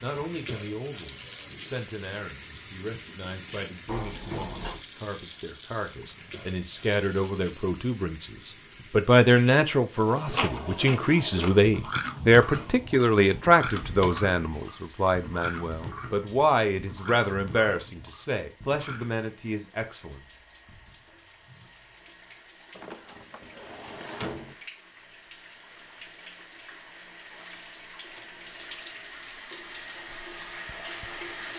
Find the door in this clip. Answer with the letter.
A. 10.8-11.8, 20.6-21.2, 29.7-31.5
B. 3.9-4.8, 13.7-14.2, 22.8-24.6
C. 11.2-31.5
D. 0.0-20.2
B.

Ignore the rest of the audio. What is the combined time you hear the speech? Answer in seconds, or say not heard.
20 s.